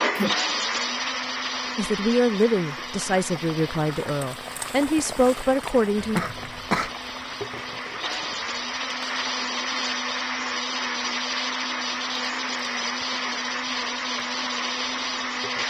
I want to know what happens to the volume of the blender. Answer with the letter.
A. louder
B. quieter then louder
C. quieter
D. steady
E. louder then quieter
B.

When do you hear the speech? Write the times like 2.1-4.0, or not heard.
1.8-6.2.